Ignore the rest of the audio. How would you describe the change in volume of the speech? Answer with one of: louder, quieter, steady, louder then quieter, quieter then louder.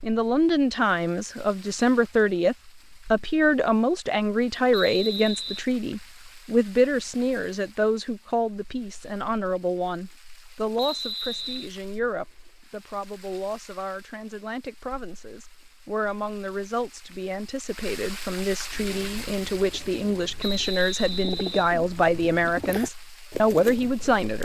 quieter then louder.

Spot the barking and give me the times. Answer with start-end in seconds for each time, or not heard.
not heard.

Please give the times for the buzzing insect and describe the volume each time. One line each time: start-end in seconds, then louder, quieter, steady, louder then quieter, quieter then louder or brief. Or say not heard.
not heard.